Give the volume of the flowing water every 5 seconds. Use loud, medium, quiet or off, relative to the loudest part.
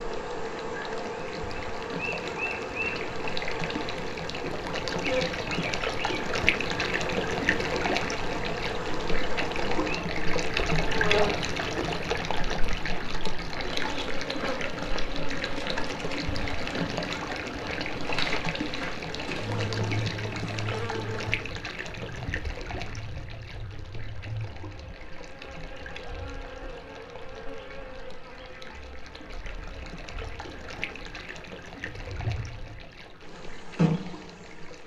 medium, loud, loud, loud, medium, quiet, quiet.